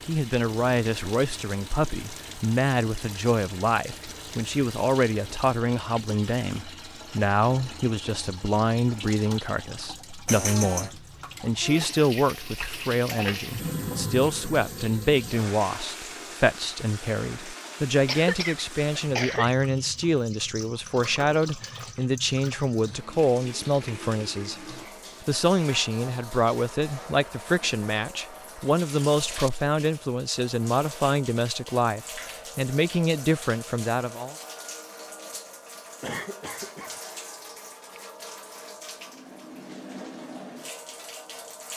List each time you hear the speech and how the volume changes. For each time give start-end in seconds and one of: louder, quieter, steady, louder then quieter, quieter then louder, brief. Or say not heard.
0.1-34.4 steady.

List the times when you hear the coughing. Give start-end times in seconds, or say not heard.
10.2-10.9, 18.1-19.5, 36.0-37.0.